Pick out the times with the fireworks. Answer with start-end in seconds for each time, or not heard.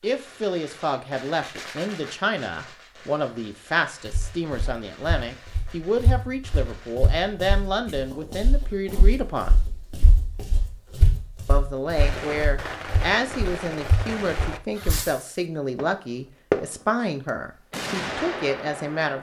0.0-7.0, 11.9-19.1.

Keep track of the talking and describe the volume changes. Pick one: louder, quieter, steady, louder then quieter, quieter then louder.
steady.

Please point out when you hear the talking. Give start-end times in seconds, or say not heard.
0.0-9.6, 11.4-19.1.